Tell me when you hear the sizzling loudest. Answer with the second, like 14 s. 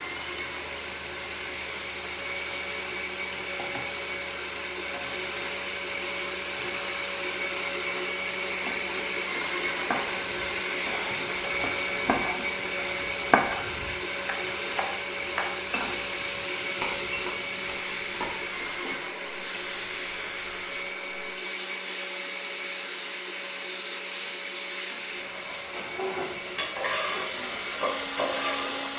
28 s.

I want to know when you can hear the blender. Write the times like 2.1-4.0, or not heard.
0.0-28.9.